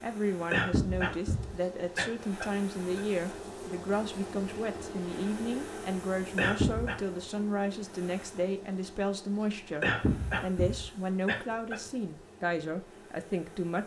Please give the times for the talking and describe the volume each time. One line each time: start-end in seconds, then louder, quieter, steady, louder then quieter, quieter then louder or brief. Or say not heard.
0.0-13.8 steady.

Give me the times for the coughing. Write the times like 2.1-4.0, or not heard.
0.5-3.0, 6.3-7.0, 9.8-11.8.